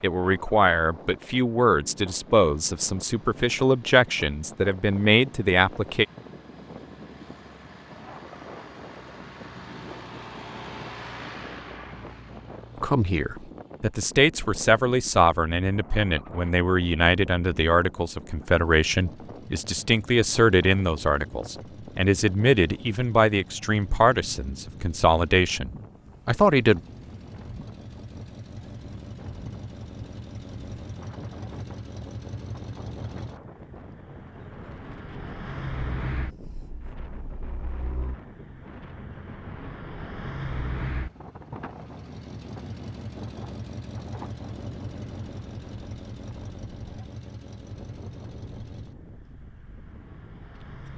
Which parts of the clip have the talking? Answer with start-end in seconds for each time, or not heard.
0.0-6.0, 12.8-26.8.